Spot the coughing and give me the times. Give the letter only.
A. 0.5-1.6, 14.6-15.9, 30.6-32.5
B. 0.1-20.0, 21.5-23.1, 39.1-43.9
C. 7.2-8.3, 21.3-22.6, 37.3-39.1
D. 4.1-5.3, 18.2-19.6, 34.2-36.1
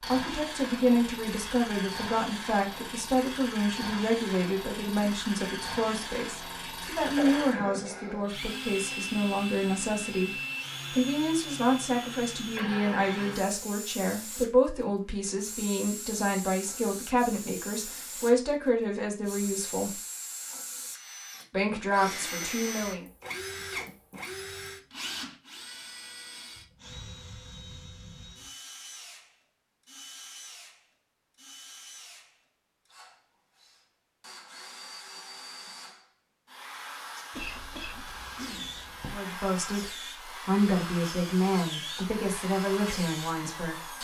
C.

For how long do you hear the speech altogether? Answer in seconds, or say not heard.
26 s.